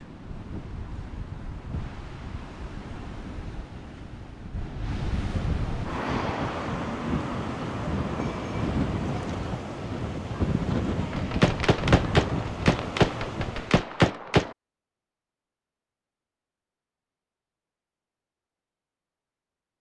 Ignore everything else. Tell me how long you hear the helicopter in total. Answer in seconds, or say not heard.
not heard.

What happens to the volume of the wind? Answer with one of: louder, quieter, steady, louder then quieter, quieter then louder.
louder.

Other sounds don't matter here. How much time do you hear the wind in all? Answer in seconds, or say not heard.
14 s.